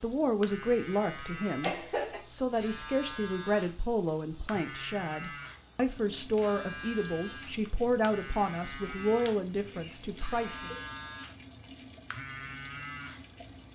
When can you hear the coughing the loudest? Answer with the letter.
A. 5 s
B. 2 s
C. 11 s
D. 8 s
B.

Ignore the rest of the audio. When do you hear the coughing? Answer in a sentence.
The coughing can be heard from 1.6 to 2.2 s and from 9.6 to 10.8 s.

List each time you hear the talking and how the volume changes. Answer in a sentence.
The talking can be heard from 0.0 to 10.7 s, at a steady volume.